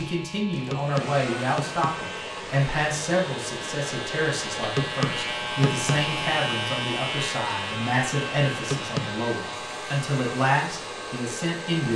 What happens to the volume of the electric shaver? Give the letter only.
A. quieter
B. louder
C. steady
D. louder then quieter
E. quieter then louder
D.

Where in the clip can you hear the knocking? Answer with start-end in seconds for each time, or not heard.
0.7-2.0, 4.8-6.1, 8.7-9.2.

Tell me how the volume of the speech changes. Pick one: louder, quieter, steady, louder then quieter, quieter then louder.
steady.